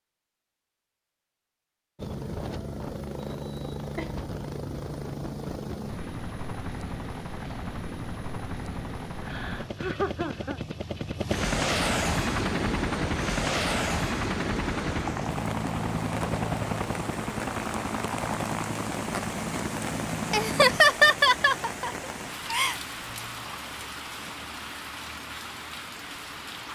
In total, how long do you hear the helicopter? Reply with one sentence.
The helicopter can be heard for 19 seconds in total.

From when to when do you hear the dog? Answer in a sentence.
You can't hear the dog here.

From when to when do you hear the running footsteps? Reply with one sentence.
You can't hear the running footsteps here.